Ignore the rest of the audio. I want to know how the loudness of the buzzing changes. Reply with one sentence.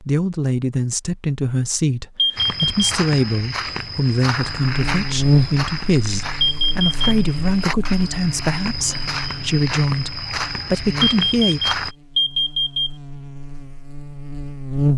The loudness of the buzzing goes down.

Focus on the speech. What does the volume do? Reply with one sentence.
The loudness of the speech stays about the same.